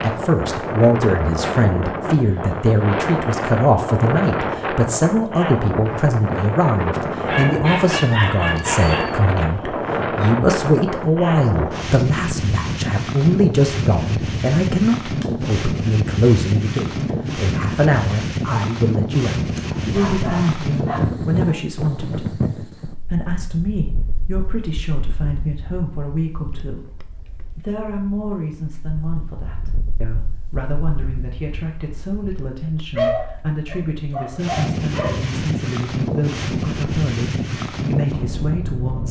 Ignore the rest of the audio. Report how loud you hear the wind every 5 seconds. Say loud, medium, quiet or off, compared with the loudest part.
loud, loud, loud, loud, loud, quiet, medium, loud.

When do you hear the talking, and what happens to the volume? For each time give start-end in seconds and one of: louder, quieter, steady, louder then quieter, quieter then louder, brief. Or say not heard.
0.0-39.0 quieter.